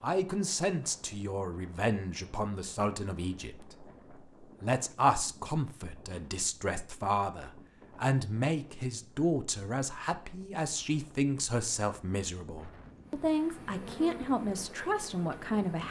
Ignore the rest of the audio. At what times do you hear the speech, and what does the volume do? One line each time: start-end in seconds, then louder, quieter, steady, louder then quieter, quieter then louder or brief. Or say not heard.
0.0-15.8 steady.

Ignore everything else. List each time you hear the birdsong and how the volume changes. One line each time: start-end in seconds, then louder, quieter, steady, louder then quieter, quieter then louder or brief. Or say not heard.
not heard.